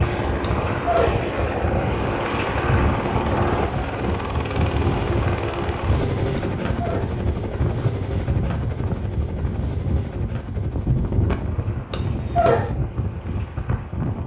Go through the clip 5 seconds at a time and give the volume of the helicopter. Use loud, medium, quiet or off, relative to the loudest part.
loud, loud, quiet.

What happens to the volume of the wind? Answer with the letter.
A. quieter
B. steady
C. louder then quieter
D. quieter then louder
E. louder
B.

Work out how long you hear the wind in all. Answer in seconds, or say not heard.
14 s.